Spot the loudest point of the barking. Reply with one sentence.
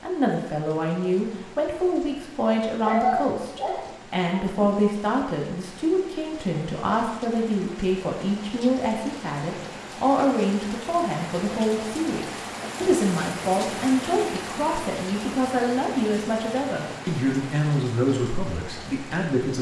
The volume of the barking peaks at 3 seconds.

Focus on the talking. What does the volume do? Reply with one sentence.
The volume of the talking stays about the same.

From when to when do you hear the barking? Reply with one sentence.
You can hear the barking from 2.8 to 4.7 s.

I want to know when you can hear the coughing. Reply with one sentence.
The coughing can't be heard in this clip.